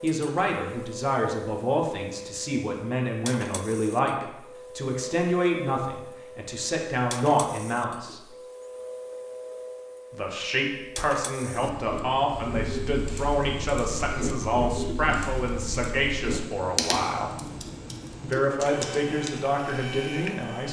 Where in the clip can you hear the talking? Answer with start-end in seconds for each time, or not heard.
0.0-8.2, 10.1-17.4, 18.2-20.6.